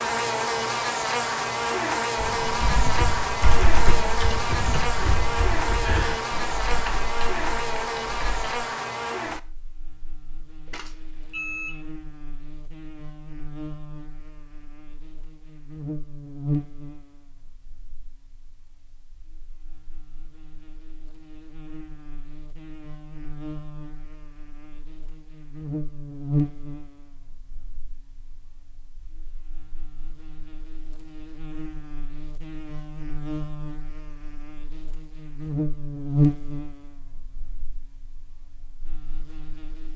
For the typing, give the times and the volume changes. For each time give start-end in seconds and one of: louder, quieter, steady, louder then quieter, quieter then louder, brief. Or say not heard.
2.1-8.7 quieter.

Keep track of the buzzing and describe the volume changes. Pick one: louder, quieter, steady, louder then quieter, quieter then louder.
quieter then louder.